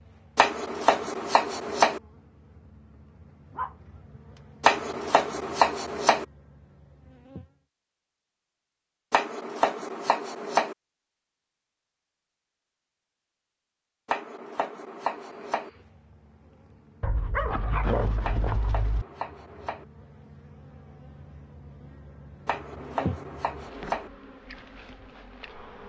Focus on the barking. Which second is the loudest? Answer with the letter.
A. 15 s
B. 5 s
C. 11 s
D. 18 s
D.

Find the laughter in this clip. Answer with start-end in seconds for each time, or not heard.
not heard.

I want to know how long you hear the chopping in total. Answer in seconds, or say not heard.
10 s.